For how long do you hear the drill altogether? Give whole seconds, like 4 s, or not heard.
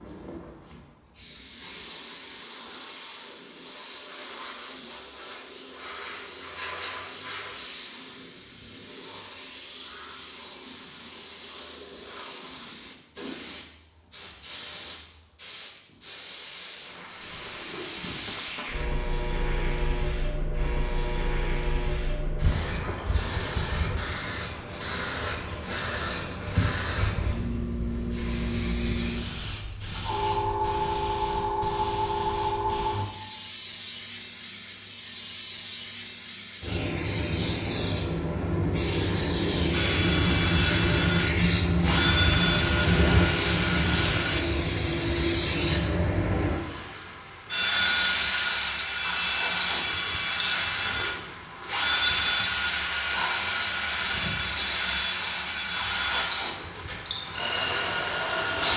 16 s.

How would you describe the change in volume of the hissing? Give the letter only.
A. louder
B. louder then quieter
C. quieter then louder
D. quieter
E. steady
A.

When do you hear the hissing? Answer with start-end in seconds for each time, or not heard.
0.0-58.7.